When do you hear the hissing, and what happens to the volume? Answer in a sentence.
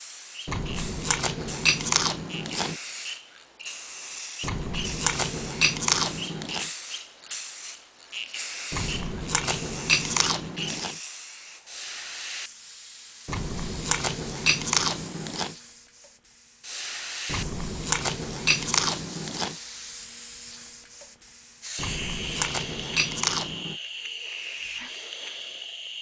The hissing can be heard from 0.0 to 25.9 s, at a steady volume.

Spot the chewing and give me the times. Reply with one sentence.
You can hear the chewing from 0.5 to 2.8 s, from 4.4 to 6.7 s, from 8.7 to 10.9 s, from 13.2 to 15.6 s, from 17.2 to 19.6 s and from 21.8 to 23.8 s.